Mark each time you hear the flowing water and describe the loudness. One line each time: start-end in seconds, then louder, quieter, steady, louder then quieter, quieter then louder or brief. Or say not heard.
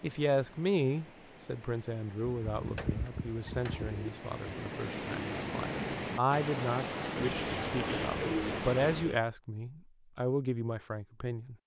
0.0-9.2 louder.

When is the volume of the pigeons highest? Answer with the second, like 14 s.
8 s.